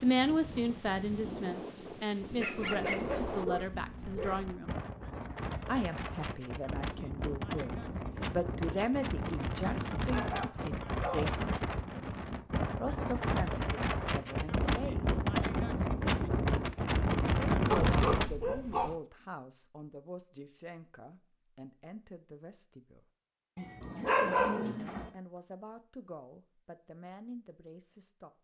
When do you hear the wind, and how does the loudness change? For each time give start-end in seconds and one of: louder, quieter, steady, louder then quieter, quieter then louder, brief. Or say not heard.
0.0-18.3 louder.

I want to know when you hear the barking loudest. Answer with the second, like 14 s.
24 s.